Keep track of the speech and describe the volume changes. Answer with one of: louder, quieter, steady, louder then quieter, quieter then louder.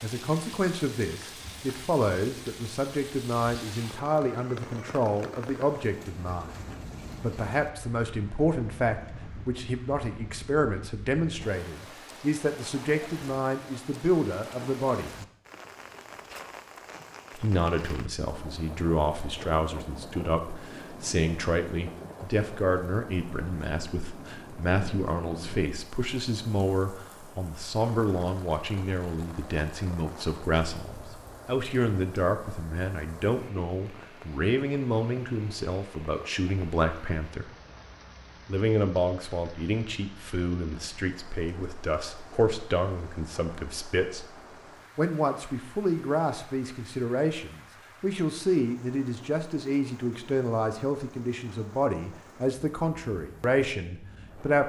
steady.